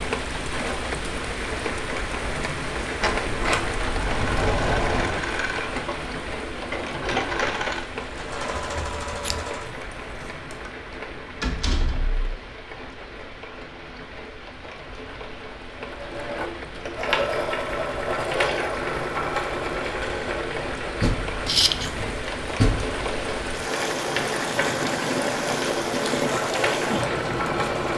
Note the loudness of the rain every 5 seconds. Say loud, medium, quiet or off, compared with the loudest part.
loud, medium, medium, medium, loud, loud.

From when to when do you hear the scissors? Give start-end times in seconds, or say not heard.
8.5-9.5, 21.4-22.1.